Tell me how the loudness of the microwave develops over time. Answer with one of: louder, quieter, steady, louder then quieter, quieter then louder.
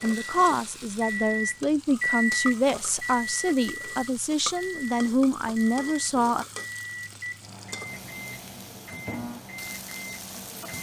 quieter.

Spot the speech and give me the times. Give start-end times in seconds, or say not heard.
0.0-6.5.